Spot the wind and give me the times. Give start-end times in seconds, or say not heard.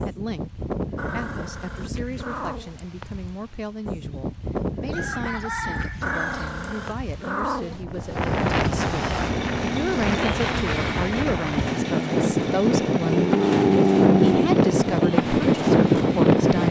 0.0-16.6.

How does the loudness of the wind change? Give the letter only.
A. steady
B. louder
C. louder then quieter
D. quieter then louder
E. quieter
B.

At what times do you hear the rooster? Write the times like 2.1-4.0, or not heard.
4.8-6.5.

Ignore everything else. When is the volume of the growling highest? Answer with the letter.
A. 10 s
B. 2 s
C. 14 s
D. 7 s
C.